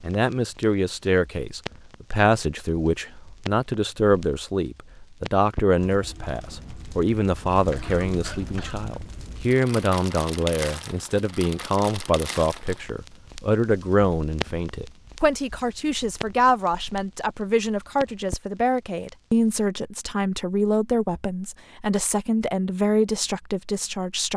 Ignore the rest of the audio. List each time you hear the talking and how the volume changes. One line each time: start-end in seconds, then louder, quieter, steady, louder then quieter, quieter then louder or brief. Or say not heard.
0.0-24.3 steady.